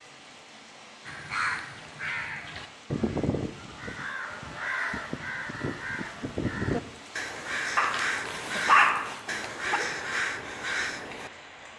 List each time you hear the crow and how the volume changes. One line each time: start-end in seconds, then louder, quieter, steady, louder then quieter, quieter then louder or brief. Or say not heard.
1.1-11.3 steady.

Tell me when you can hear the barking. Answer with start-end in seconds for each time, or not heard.
7.8-9.8.